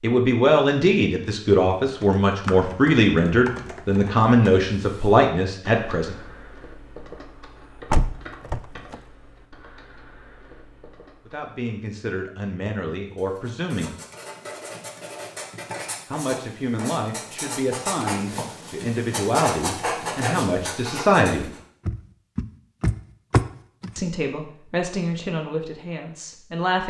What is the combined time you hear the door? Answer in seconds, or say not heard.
3 s.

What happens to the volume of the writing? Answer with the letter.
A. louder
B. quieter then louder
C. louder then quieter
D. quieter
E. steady
A.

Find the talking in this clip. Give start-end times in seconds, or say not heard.
0.0-6.2, 11.2-13.9, 16.1-21.5, 23.9-26.8.